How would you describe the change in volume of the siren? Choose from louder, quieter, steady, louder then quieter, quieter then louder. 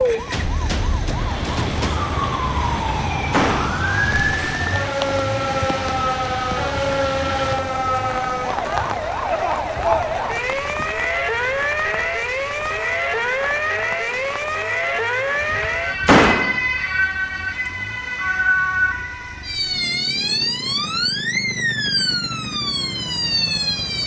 steady.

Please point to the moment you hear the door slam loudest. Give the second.
16 s.